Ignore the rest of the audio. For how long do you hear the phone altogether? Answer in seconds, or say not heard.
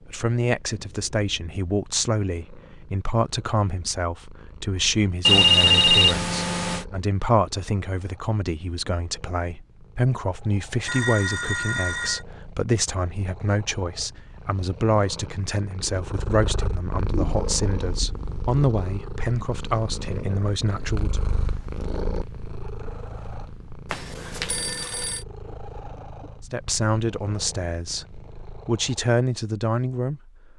4 s.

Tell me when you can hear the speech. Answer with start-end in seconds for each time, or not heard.
0.1-21.2, 26.4-30.5.